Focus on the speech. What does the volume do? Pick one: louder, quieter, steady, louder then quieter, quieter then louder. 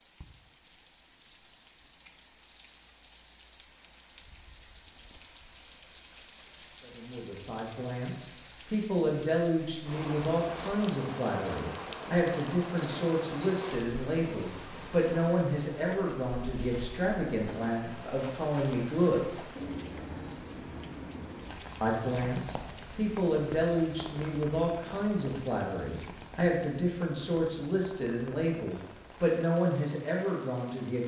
steady.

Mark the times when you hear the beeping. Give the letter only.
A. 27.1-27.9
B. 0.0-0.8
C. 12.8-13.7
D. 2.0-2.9
C.